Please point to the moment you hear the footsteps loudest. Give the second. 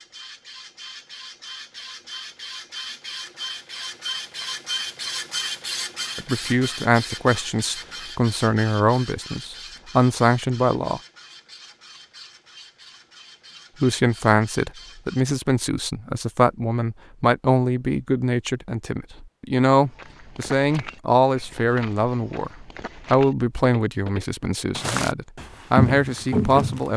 26 s.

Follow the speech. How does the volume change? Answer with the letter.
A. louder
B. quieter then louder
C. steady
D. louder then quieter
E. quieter
C.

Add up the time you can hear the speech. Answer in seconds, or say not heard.
17 s.